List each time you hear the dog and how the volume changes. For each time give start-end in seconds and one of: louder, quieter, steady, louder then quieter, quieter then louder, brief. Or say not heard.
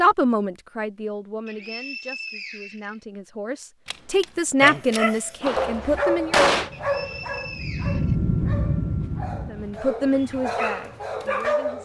4.6-11.8 quieter then louder.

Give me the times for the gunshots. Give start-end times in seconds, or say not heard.
3.9-6.7.